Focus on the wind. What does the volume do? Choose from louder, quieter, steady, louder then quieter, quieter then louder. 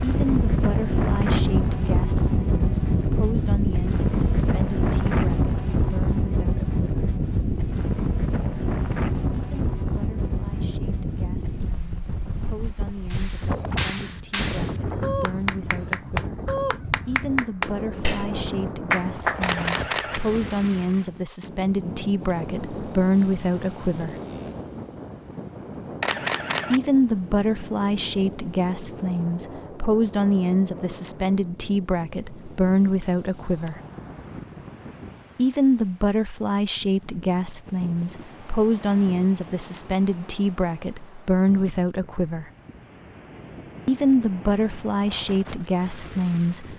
quieter.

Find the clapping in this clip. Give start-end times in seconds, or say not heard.
13.1-19.4.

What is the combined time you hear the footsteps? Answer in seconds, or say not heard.
not heard.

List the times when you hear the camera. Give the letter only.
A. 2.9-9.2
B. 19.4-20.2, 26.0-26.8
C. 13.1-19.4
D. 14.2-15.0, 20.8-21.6
B.